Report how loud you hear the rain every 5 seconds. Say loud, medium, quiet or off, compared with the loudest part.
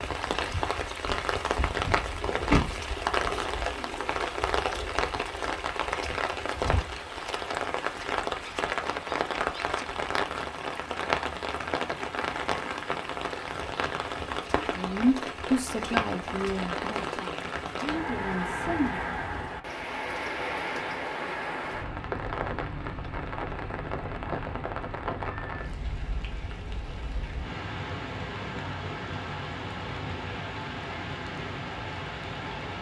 loud, loud, loud, loud, loud, medium, medium.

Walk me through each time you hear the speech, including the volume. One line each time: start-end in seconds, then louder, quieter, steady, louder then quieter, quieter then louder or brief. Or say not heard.
14.6-19.1 quieter.